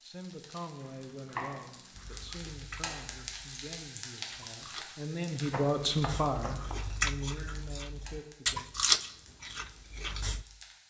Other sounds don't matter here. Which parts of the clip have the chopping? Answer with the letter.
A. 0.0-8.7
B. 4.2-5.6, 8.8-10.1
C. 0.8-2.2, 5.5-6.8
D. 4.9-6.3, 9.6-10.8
C.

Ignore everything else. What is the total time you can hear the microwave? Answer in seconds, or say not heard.
not heard.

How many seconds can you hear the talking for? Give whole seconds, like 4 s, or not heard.
9 s.